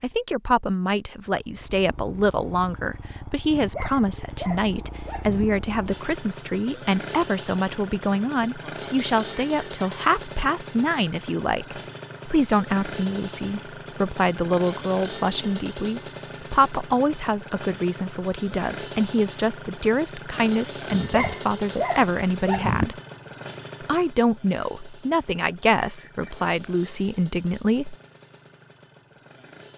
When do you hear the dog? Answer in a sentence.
The dog can be heard from 3.5 to 5.5 s and from 20.9 to 22.9 s.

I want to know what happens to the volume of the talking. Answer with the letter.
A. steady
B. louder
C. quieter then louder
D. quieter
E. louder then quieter
A.